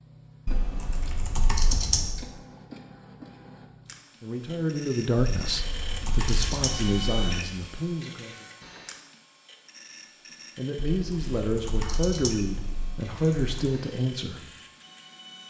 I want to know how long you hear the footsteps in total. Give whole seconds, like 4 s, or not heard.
not heard.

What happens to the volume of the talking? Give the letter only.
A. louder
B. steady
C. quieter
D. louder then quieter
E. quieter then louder
B.